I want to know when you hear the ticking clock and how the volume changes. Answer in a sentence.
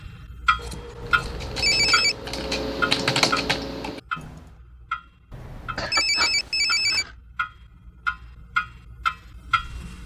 You can hear the ticking clock from 0.0 to 10.0 s, getting quieter then louder.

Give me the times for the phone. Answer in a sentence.
You can hear the phone from 1.0 to 2.1 s and from 5.3 to 7.0 s.